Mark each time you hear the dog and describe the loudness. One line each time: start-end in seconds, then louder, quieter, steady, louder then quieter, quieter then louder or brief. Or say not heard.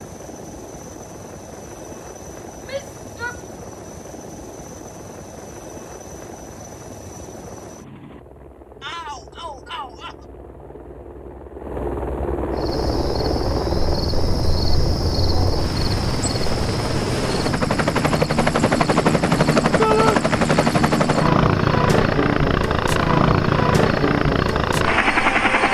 not heard.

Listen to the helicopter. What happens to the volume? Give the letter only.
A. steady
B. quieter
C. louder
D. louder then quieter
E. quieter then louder
C.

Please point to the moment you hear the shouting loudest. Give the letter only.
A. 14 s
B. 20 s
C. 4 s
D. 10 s
B.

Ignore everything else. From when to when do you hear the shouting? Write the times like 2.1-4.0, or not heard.
2.6-3.5, 8.8-10.2, 19.8-20.2.